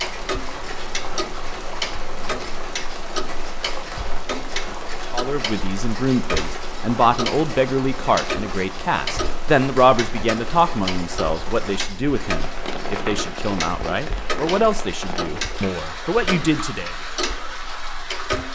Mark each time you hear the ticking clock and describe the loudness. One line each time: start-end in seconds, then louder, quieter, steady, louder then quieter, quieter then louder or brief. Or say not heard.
0.0-18.5 steady.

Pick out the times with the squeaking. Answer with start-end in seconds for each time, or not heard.
12.6-13.3.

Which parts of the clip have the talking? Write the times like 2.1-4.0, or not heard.
5.1-16.9.